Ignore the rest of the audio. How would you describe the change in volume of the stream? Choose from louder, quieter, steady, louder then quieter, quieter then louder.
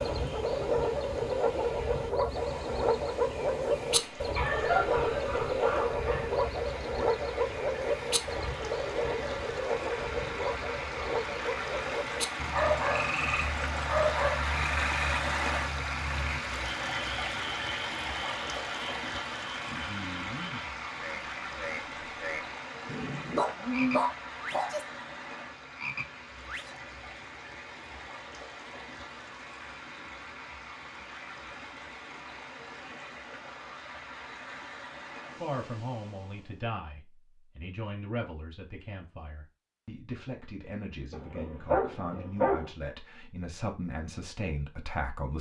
louder then quieter.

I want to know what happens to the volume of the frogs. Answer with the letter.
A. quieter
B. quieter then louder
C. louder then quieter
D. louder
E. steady
A.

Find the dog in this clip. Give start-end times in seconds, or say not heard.
4.3-6.2, 12.5-14.3, 22.9-24.7, 41.1-42.7.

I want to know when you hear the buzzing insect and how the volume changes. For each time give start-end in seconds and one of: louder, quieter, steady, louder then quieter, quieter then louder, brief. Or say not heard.
not heard.